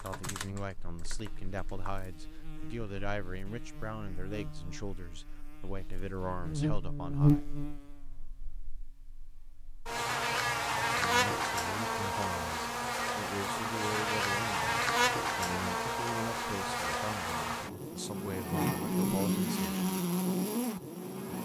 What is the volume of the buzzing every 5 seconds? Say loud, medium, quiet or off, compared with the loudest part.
quiet, loud, loud, loud, loud.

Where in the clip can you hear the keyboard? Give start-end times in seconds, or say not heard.
0.0-1.9.